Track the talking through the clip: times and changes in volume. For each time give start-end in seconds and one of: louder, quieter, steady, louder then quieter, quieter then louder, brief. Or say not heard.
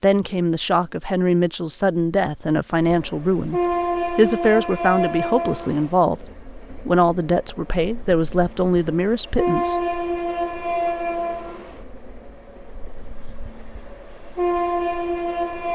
0.0-9.8 steady.